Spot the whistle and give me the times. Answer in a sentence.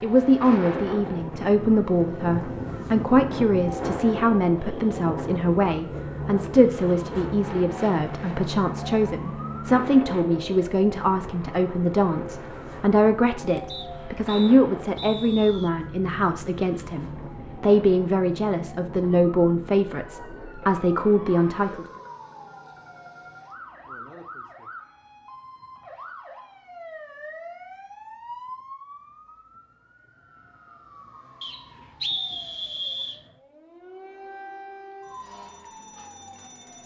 You can hear the whistle from 13.7 to 15.7 s and from 31.4 to 33.2 s.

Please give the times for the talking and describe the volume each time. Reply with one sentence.
You can hear the talking from 0.0 to 21.9 s, at a steady volume.